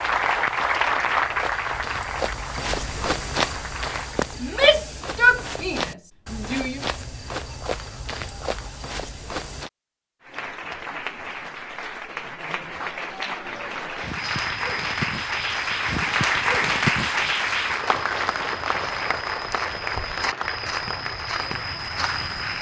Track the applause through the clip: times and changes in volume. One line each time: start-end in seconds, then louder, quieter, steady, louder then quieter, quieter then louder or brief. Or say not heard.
0.0-4.2 quieter
10.2-22.5 louder then quieter.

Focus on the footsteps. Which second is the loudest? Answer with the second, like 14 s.
3 s.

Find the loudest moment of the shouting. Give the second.
5 s.